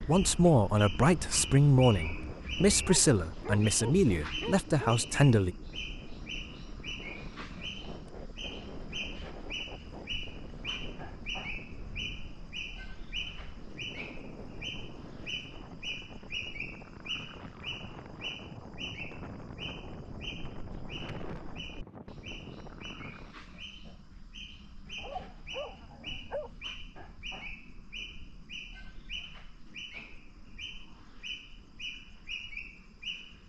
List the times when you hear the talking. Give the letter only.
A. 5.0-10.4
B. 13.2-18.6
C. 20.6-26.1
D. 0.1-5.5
D.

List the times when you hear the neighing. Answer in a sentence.
The neighing can't be heard in this clip.